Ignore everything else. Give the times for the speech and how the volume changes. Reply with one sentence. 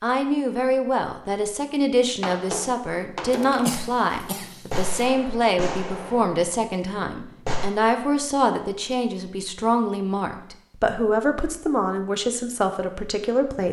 The speech can be heard from 0.0 to 13.6 s, at a steady volume.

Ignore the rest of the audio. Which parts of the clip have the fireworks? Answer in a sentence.
The fireworks can be heard from 2.2 to 7.7 s.